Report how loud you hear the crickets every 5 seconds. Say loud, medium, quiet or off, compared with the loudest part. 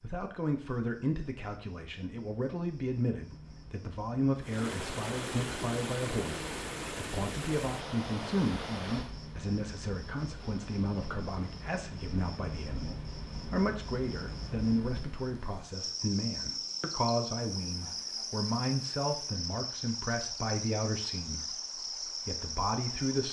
quiet, medium, medium, loud, loud.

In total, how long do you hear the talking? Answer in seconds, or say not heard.
23 s.